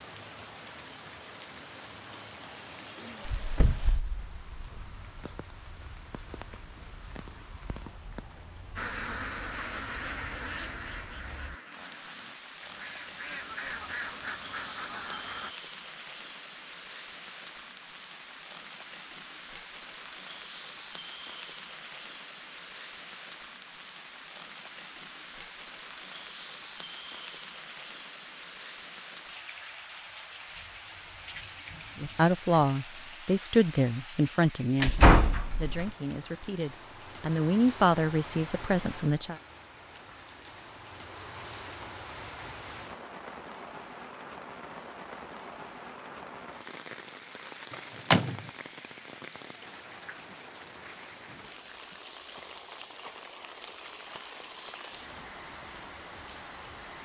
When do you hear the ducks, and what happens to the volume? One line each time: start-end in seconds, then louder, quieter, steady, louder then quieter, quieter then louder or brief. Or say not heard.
8.8-15.6 quieter then louder.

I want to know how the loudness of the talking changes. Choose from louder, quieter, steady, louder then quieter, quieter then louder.
quieter then louder.